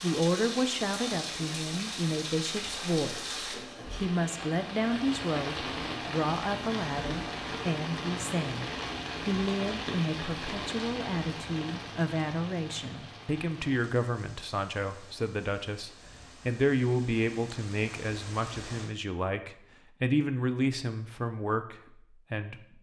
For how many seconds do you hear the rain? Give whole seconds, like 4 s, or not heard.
19 s.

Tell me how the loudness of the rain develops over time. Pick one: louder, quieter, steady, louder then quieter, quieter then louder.
quieter.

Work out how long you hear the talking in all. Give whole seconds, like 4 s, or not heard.
22 s.